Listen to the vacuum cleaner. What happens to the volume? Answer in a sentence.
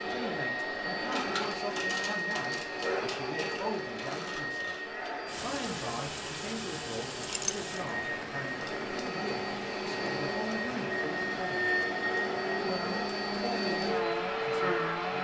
The volume of the vacuum cleaner goes down, then up.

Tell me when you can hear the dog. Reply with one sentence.
The dog can't be heard in this clip.